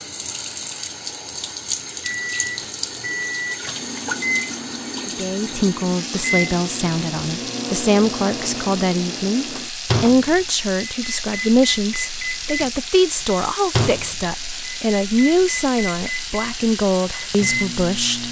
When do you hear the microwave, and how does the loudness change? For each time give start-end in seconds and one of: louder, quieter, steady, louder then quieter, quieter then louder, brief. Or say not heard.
2.2-18.2 steady.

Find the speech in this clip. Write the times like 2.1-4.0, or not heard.
5.0-18.2.